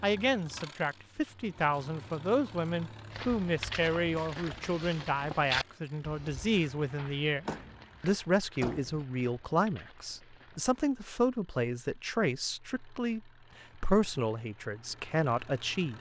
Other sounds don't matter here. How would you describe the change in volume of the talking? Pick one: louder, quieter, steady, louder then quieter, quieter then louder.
steady.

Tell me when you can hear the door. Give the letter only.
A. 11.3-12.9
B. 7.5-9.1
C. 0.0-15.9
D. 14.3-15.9
B.